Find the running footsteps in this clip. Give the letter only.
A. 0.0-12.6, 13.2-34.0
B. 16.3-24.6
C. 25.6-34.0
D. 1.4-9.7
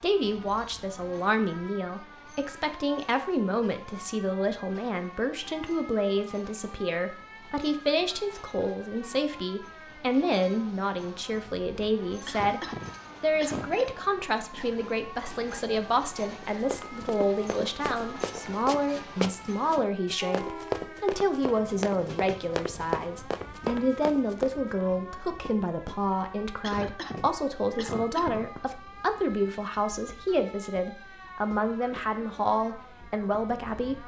B.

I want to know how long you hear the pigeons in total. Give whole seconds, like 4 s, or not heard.
not heard.